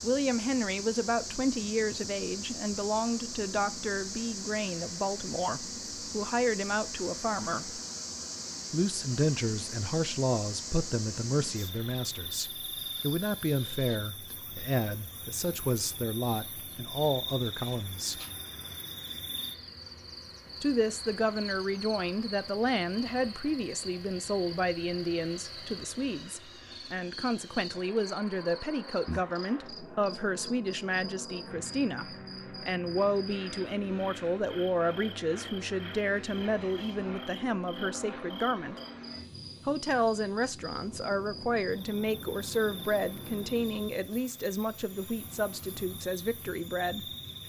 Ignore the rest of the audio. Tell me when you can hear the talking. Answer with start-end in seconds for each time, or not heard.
0.0-7.8, 8.7-18.2, 20.6-38.8, 39.6-47.0.